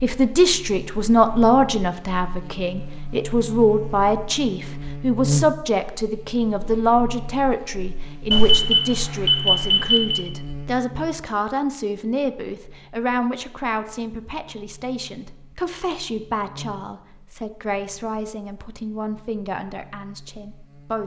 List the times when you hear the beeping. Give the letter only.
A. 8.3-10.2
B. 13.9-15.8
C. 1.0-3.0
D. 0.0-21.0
A.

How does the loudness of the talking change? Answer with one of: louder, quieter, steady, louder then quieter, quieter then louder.
quieter.